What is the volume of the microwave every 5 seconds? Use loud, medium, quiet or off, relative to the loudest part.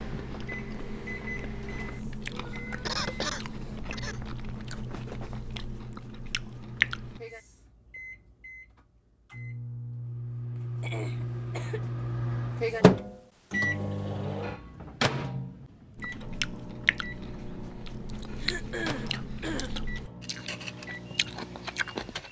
quiet, quiet, loud, medium, quiet.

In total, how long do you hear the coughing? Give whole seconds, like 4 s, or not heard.
4 s.